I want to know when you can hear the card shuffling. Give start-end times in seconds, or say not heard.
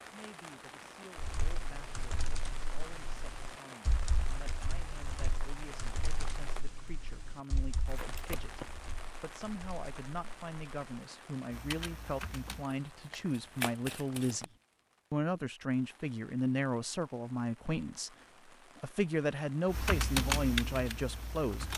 7.8-8.7, 12.7-14.4.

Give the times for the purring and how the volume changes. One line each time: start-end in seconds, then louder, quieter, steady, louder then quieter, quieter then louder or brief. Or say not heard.
not heard.